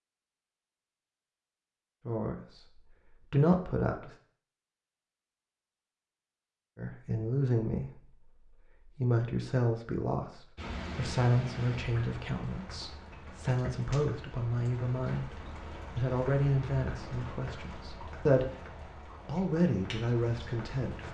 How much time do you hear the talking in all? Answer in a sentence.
The talking can be heard for 16 seconds in total.